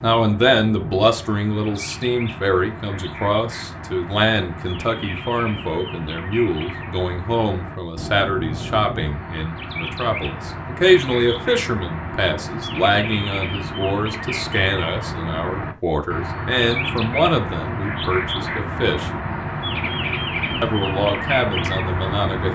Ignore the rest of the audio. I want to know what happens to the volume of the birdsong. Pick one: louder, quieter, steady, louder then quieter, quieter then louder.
louder.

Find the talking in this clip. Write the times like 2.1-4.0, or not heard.
0.0-19.1, 20.6-22.5.